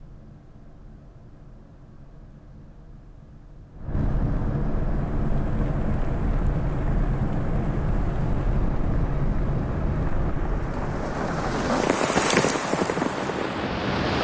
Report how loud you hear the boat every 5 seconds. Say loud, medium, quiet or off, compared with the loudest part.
medium, loud, loud.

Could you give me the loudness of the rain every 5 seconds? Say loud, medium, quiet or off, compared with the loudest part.
off, quiet, loud.